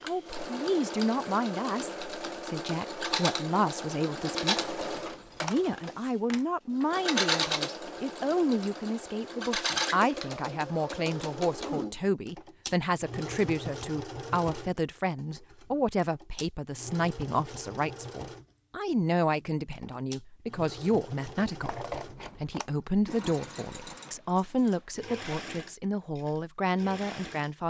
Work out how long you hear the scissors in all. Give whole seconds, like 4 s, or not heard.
2 s.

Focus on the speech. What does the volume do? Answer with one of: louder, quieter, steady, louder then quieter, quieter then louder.
steady.